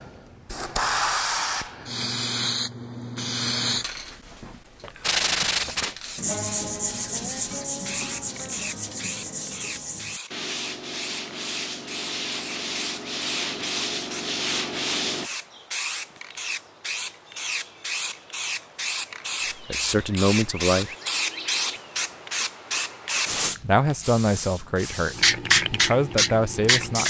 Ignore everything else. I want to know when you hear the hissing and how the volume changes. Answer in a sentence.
The hissing can be heard from 0.0 to 27.0 s, getting quieter then louder.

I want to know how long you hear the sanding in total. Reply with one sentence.
You can hear the sanding for 10 seconds altogether.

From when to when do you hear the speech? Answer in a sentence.
You can hear the speech from 19.6 to 20.9 s and from 23.6 to 27.0 s.